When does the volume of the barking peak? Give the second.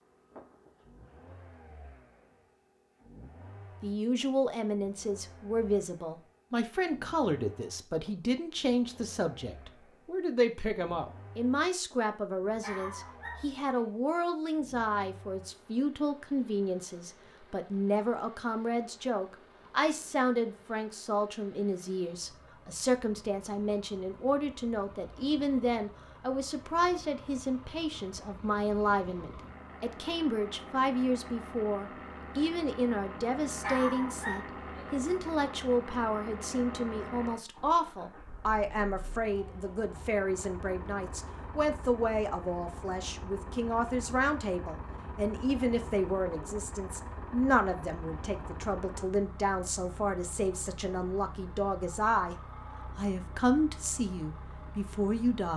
34 s.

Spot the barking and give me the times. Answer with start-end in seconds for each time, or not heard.
12.6-13.9, 33.6-34.9.